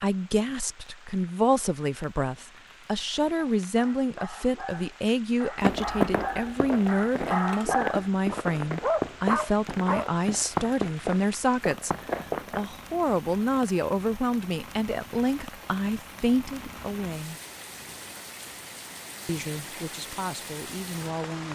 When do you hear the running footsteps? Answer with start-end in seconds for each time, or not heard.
5.6-12.7.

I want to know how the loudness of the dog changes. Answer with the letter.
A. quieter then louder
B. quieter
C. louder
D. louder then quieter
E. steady
C.